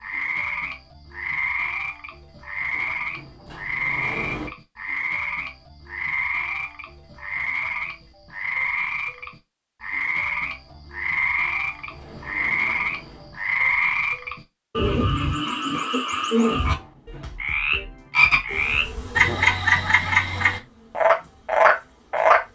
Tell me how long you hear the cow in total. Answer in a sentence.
The cow can't be heard in this clip.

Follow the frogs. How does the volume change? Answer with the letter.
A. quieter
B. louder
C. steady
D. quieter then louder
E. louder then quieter
B.